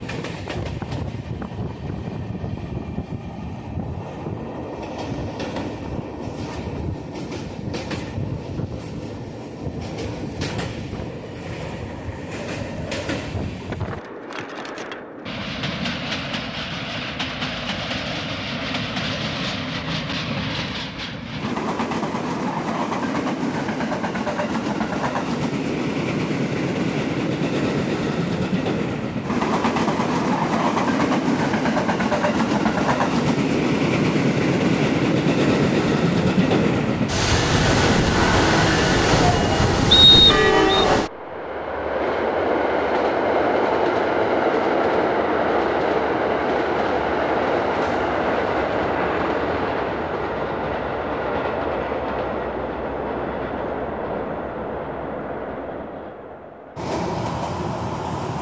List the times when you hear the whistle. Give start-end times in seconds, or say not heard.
39.9-40.9.